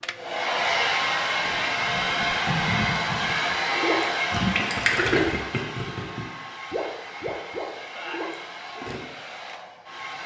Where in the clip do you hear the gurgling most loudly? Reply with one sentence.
The volume of the gurgling peaks at 5 seconds.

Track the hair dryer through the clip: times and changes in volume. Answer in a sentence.
You can hear the hair dryer from 0.0 to 10.2 s, getting quieter.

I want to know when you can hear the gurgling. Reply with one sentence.
You can hear the gurgling from 1.4 to 9.0 s.